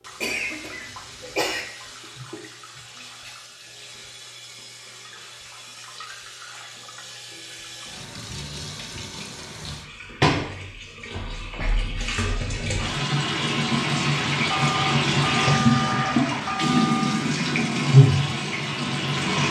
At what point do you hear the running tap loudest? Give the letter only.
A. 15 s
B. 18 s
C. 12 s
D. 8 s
B.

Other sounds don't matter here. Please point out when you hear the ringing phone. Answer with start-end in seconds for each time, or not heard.
14.5-17.2.